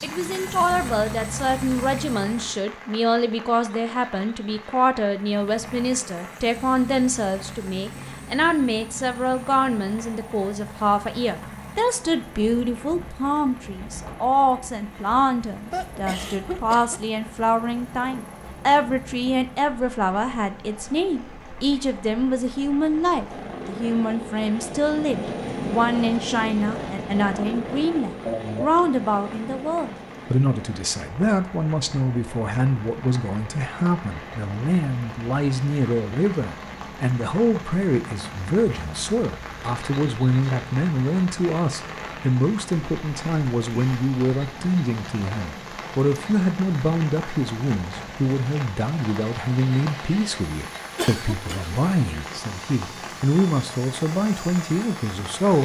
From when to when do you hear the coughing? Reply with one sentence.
You can hear the coughing from 15.7 to 17.0 s, from 28.2 to 28.8 s and from 51.0 to 51.8 s.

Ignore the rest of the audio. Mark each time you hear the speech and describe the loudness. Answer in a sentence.
You can hear the speech from 0.0 to 55.6 s, at a steady volume.